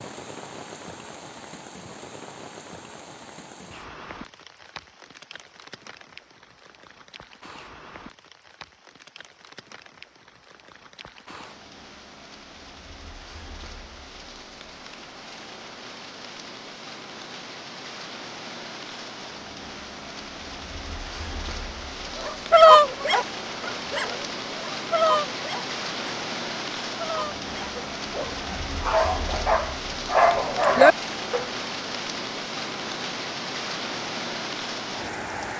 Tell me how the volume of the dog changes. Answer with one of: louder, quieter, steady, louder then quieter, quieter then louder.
quieter then louder.